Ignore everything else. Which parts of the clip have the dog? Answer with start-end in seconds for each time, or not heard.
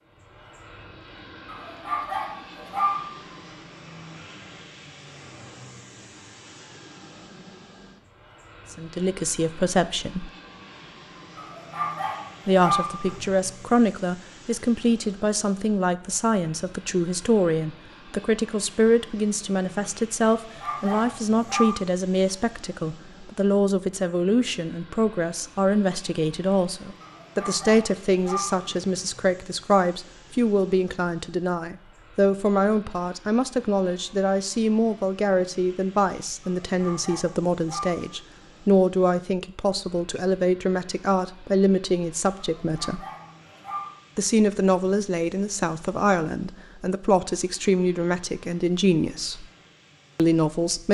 1.4-3.2, 11.3-13.3, 20.4-21.8, 27.0-28.9, 36.4-38.2, 42.4-44.0.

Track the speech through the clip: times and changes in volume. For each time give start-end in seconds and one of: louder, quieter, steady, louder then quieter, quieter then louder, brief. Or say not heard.
8.7-10.3 brief
12.4-43.0 steady
44.1-49.5 steady
50.1-50.8 brief.